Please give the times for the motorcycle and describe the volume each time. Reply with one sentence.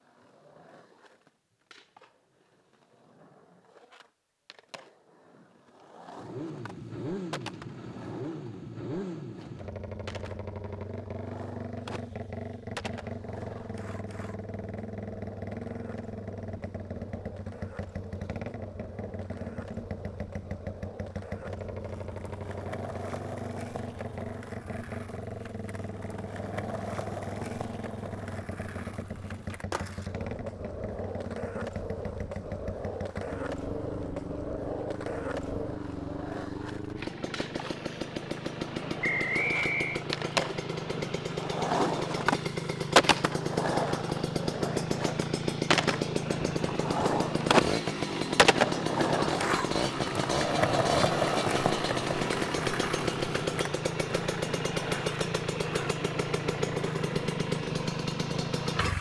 You can hear the motorcycle from 6.2 to 58.9 s, getting louder.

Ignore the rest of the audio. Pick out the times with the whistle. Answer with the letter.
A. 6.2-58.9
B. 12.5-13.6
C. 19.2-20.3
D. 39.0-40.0
D.